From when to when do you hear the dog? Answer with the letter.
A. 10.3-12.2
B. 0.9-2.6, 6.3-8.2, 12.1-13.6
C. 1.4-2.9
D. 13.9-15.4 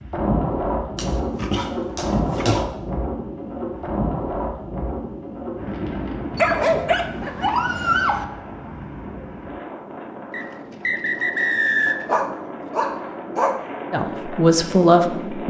B.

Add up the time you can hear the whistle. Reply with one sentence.
The whistle can be heard for 2 seconds in total.